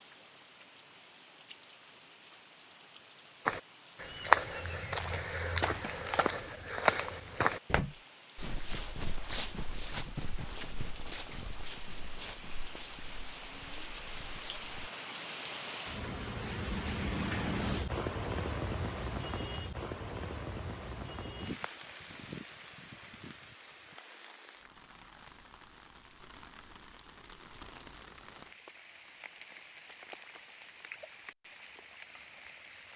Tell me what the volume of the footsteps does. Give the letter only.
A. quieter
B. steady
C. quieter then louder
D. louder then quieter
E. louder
A.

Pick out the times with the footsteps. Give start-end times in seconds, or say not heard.
3.5-14.9.